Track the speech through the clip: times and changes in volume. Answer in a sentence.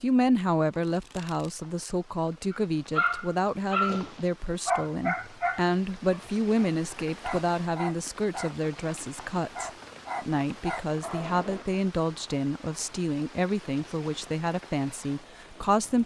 You can hear the speech from 0.0 to 16.0 s, at a steady volume.